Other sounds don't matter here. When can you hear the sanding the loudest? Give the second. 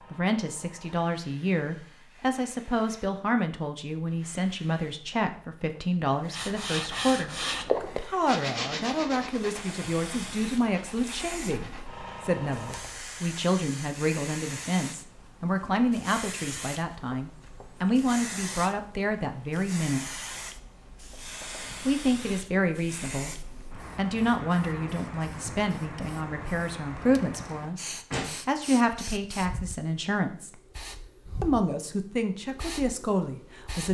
8 s.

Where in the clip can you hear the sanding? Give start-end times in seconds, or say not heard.
6.3-12.1.